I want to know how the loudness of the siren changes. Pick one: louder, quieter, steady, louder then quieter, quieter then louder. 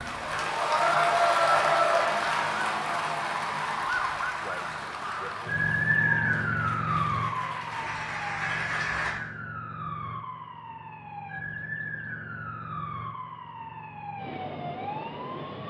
louder then quieter.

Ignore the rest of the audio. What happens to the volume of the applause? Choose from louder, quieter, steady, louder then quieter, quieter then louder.
quieter then louder.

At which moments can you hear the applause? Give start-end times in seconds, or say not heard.
0.0-9.2.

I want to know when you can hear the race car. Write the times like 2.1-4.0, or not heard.
not heard.